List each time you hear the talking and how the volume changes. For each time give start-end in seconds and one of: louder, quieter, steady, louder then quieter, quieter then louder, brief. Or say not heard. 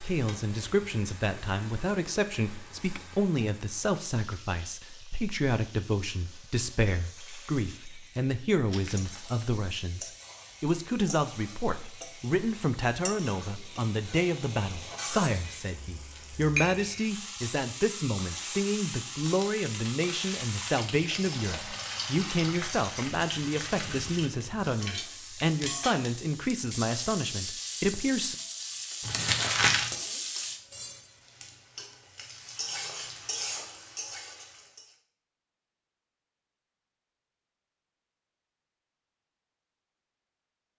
0.0-28.4 steady.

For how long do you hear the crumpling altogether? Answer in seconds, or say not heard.
3 s.